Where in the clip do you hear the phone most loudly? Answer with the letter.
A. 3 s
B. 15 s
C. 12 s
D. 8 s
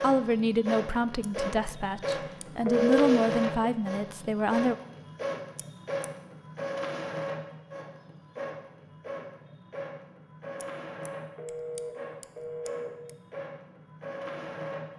A.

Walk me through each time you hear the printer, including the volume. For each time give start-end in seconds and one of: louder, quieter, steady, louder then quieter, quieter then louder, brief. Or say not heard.
0.0-14.9 quieter.